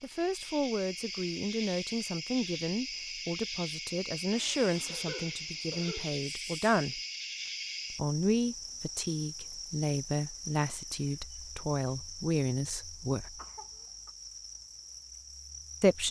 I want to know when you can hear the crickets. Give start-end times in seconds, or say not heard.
0.0-16.0.